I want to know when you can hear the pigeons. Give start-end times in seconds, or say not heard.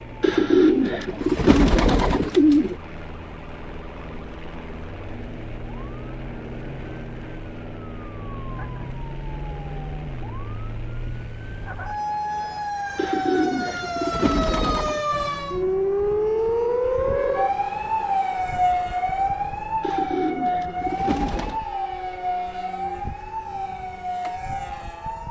0.2-2.8, 12.9-15.0, 19.8-21.6.